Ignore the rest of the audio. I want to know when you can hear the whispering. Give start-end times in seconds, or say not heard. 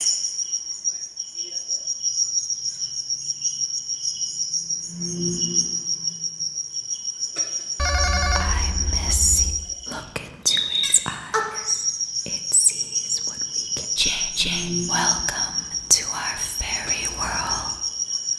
8.3-17.8.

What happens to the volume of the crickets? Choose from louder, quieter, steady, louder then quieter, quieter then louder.
steady.